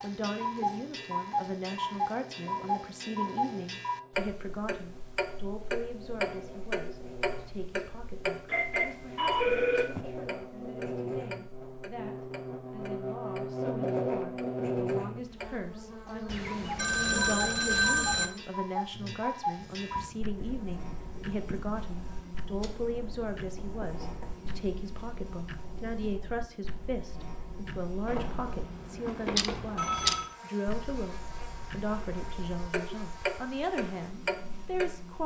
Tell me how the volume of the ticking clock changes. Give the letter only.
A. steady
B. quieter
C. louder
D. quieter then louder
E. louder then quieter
D.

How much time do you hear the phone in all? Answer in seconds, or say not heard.
6 s.